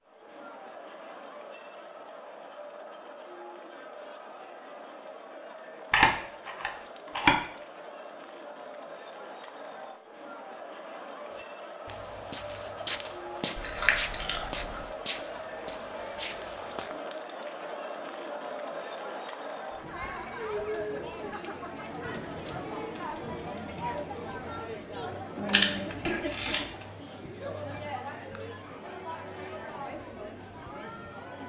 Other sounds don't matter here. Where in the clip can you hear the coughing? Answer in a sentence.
You can hear the coughing from 25.4 to 26.2 s.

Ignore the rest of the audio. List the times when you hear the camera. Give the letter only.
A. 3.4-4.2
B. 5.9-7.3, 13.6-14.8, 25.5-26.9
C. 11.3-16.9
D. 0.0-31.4
B.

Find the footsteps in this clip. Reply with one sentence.
You can hear the footsteps from 11.3 to 16.9 s.